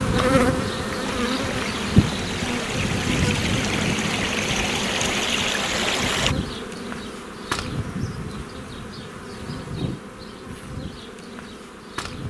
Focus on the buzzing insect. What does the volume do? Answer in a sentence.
The loudness of the buzzing insect goes down.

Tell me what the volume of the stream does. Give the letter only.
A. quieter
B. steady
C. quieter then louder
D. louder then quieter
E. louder
E.